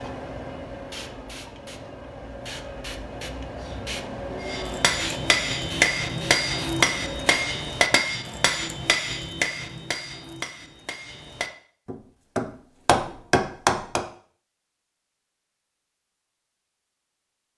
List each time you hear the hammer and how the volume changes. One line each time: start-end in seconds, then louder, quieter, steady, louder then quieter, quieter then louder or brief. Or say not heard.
4.4-14.1 quieter then louder.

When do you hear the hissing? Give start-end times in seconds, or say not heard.
0.0-7.5.